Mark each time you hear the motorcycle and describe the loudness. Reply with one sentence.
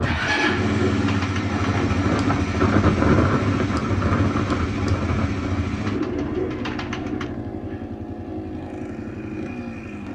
The motorcycle can be heard from 0.0 to 10.1 s, getting quieter.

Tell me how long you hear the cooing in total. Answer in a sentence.
You can hear the cooing for 3 seconds altogether.